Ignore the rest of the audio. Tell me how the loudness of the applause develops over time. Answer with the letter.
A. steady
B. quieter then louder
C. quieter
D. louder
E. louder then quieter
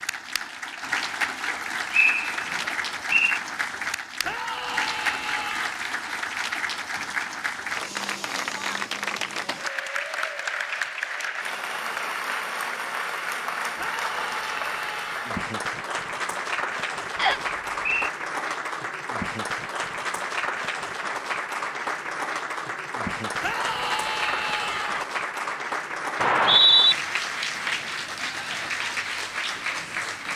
A.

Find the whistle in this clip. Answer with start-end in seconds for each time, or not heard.
1.9-3.4, 17.1-18.1, 26.2-26.9.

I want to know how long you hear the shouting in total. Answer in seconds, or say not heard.
5 s.